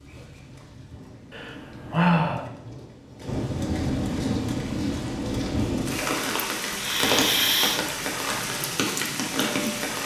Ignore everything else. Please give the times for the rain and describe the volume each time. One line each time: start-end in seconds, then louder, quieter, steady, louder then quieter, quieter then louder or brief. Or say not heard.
0.0-10.0 louder.